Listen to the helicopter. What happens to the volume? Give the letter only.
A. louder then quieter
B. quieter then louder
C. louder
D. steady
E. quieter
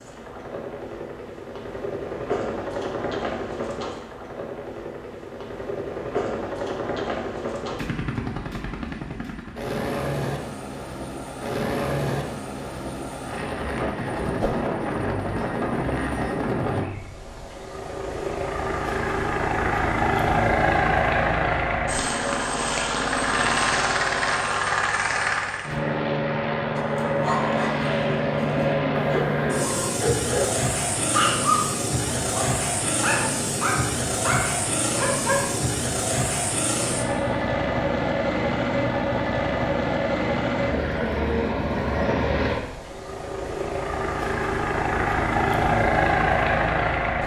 C.